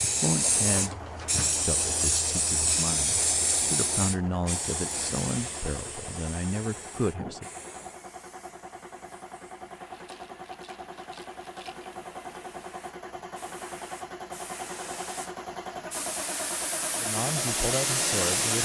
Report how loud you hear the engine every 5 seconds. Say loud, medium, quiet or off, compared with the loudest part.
medium, medium, loud, loud.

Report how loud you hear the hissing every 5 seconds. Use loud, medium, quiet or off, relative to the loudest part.
loud, quiet, quiet, loud.